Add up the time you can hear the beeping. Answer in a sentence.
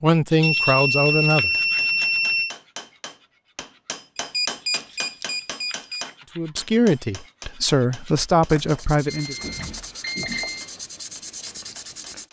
You can hear the beeping for 6 seconds altogether.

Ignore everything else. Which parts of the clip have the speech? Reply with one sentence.
You can hear the speech from 0.0 to 1.5 s and from 6.3 to 9.3 s.